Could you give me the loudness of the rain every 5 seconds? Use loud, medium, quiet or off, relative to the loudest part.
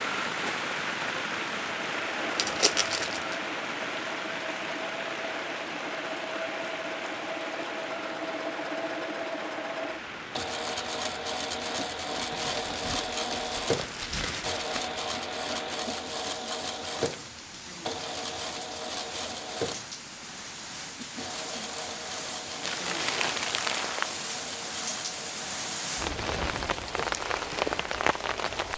loud, medium, medium, medium, medium, loud.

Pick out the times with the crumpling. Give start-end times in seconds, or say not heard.
2.4-3.4, 12.3-14.8, 22.6-24.2.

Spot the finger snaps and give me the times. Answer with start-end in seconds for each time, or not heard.
not heard.